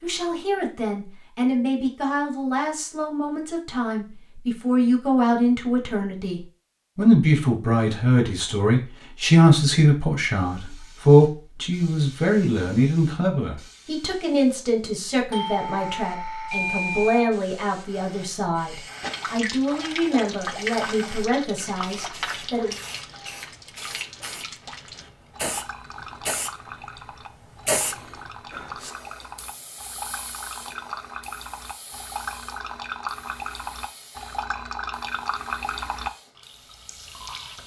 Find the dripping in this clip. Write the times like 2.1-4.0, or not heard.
19.0-37.6.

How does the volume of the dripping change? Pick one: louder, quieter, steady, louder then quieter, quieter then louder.
quieter then louder.